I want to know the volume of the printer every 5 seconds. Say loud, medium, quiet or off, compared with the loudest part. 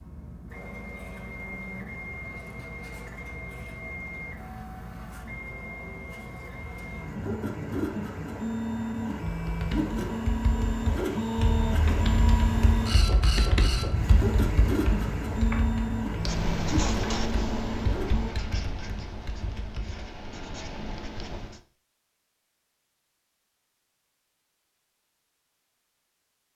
medium, loud, loud, loud, off, off.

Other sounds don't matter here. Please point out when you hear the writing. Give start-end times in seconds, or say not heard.
16.2-21.6.